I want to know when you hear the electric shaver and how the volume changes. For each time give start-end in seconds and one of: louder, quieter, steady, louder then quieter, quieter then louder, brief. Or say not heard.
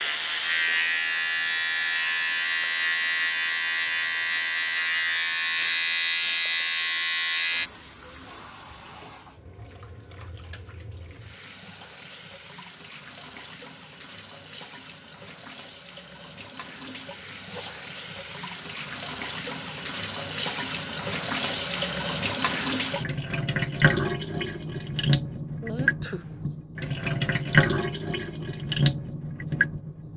0.0-7.7 steady.